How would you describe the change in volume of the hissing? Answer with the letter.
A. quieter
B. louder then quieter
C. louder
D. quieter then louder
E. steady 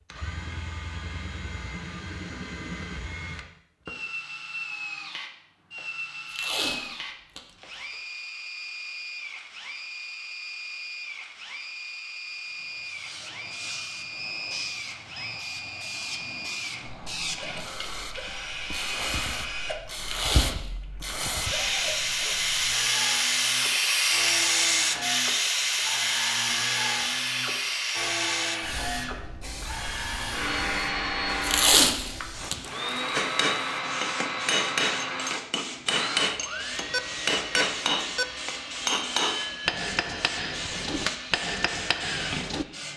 B.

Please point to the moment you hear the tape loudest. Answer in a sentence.
The loudest moment of the tape is at 32 seconds.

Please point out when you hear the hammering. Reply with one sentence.
The hammering can be heard from 33.1 to 42.6 s.